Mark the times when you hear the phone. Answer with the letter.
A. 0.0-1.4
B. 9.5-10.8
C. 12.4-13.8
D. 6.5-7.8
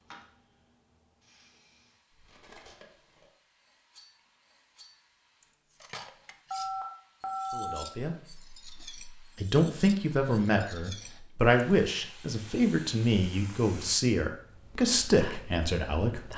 D.